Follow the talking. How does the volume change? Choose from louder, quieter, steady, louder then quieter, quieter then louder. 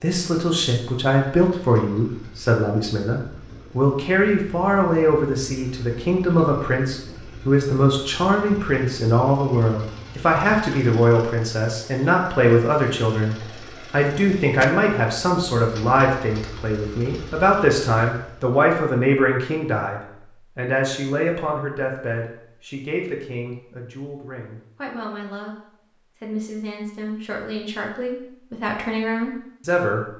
quieter.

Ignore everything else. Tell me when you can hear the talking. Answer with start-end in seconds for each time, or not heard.
0.0-25.6, 26.2-30.0.